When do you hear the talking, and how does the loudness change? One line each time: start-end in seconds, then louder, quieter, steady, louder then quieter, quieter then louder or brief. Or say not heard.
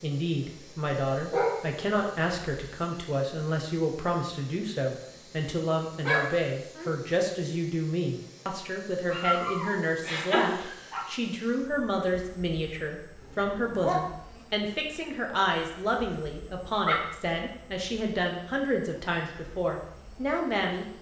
0.0-20.9 steady.